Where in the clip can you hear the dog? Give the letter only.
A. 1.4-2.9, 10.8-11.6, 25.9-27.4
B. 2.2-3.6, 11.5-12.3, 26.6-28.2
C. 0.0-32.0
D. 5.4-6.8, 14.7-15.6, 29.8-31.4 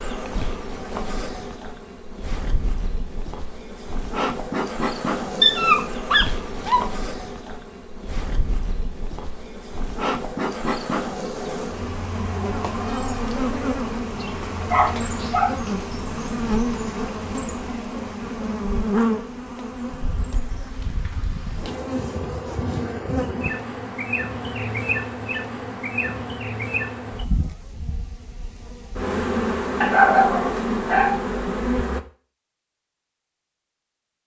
D.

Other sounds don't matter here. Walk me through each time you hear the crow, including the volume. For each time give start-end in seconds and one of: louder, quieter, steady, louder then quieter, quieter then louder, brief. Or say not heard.
not heard.